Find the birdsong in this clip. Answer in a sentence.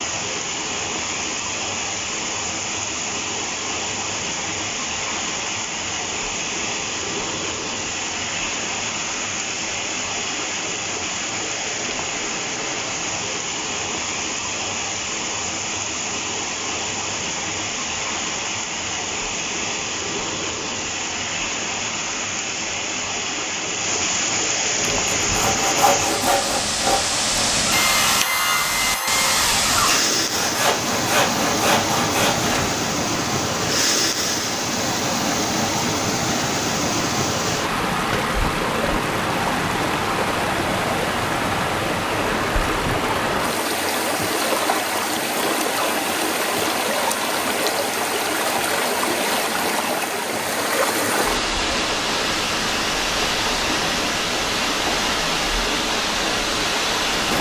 The birdsong can't be heard in this clip.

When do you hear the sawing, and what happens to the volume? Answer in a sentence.
The sawing can be heard from 24.8 to 32.7 s, at a steady volume.